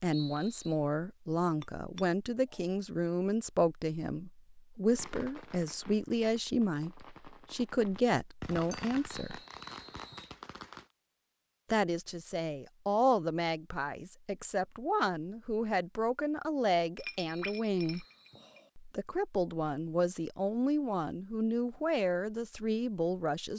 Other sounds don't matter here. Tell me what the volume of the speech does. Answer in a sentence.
The loudness of the speech stays about the same.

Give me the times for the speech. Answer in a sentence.
You can hear the speech from 0.0 to 9.4 s, from 11.7 to 18.1 s and from 18.8 to 23.5 s.